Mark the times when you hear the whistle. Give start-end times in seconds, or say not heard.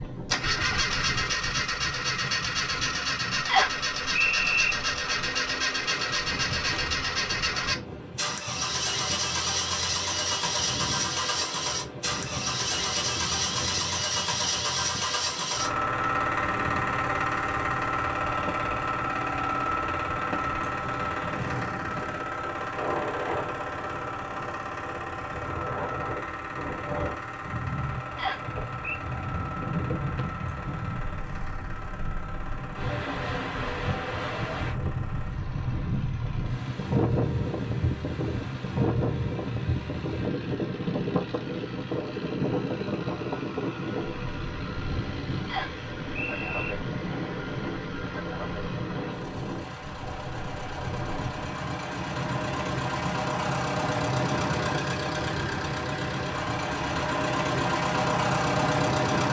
3.5-4.8, 28.1-29.0, 45.5-46.8.